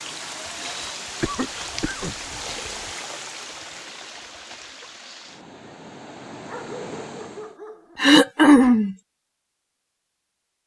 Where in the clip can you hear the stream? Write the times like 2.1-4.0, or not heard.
0.0-7.5.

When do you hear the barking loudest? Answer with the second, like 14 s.
7 s.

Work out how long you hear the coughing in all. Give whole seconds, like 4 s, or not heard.
3 s.